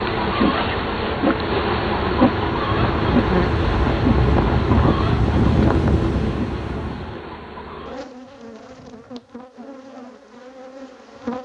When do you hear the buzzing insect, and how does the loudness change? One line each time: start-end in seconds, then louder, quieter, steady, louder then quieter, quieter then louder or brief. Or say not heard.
0.0-11.4 quieter.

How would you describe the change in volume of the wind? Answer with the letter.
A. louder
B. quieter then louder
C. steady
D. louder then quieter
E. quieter
A.